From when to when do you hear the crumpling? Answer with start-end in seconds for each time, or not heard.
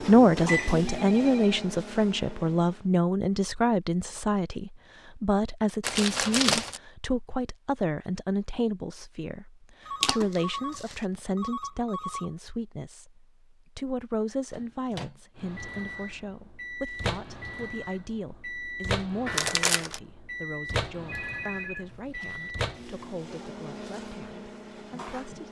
5.8-6.8, 10.0-11.0, 19.2-20.0.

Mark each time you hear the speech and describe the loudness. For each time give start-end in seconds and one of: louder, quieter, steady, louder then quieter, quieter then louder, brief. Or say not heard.
0.0-25.4 quieter.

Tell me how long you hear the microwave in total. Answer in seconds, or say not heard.
14 s.